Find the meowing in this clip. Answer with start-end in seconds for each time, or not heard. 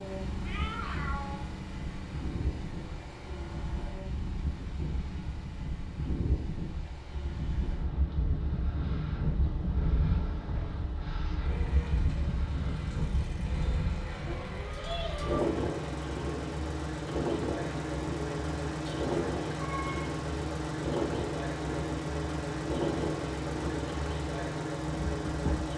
0.4-1.5, 14.2-15.5, 18.9-20.0.